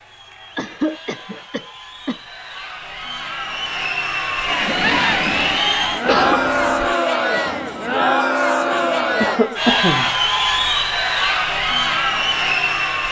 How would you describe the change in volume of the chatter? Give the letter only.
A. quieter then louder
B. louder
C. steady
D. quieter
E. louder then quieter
B.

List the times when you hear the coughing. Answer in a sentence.
You can hear the coughing from 0.6 to 2.2 s, from 6.0 to 6.8 s and from 9.2 to 10.2 s.